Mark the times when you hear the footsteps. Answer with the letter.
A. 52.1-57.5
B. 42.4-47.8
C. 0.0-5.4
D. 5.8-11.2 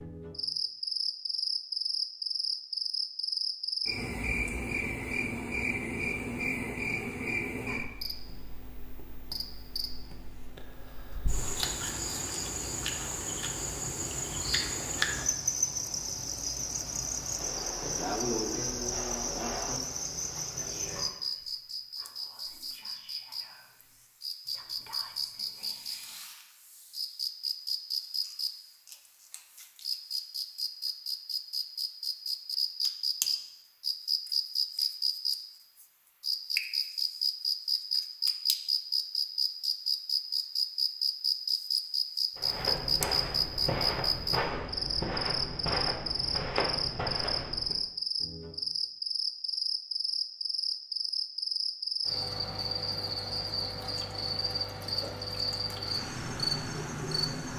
B.